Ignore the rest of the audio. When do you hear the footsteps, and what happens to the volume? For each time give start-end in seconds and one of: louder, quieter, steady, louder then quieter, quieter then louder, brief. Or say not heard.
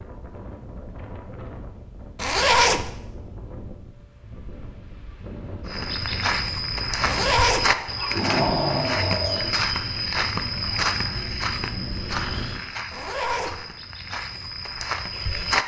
5.7-15.6 quieter.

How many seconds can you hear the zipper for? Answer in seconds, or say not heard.
2 s.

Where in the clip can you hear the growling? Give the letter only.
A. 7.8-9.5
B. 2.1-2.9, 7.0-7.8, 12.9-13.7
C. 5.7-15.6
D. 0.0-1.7
A.